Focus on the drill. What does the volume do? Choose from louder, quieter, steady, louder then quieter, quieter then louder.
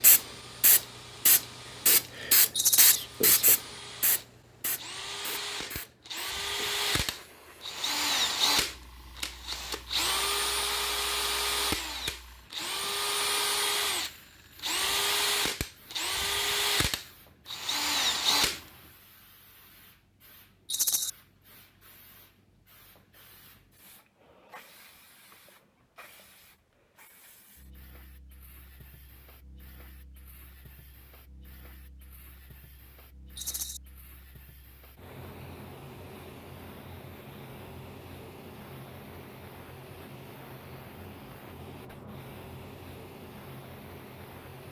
louder.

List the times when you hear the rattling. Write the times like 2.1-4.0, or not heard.
2.5-3.0, 20.6-21.1, 33.4-33.8.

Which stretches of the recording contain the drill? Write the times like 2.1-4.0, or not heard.
0.1-18.6.